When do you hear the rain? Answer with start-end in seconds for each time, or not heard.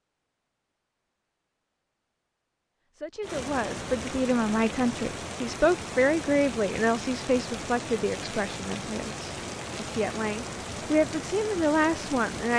3.2-12.5.